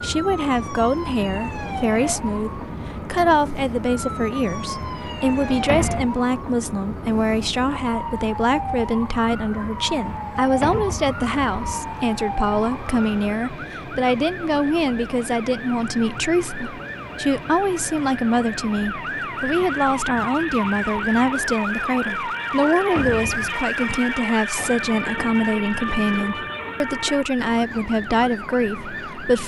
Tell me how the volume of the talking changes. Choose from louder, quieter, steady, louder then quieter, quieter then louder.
steady.